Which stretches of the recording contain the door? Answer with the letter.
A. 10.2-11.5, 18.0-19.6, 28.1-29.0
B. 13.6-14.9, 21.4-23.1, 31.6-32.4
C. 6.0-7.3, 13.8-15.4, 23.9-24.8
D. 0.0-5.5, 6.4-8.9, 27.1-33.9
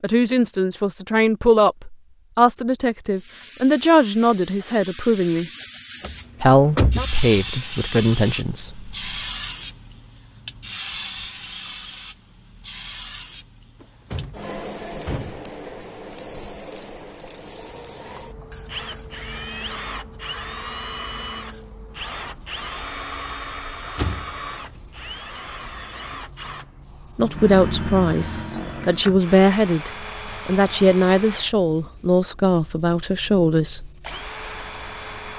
C.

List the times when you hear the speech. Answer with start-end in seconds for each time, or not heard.
0.0-5.5, 6.4-8.9, 27.1-33.9.